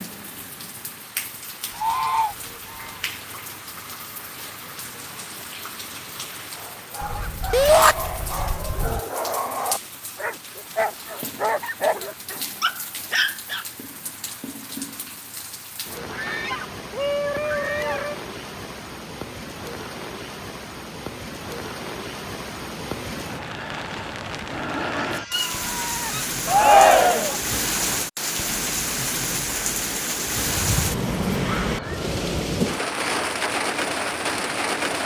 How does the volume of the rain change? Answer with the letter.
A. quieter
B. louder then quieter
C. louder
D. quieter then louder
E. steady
C.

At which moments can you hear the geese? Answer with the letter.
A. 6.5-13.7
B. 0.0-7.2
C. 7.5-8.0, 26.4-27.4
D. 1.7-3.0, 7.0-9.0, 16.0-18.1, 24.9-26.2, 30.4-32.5
D.